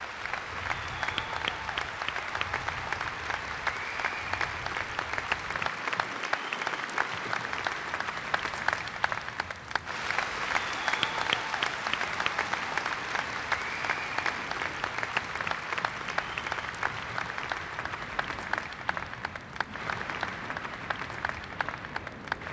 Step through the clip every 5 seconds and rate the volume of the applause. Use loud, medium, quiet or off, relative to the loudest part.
loud, loud, loud, loud, medium.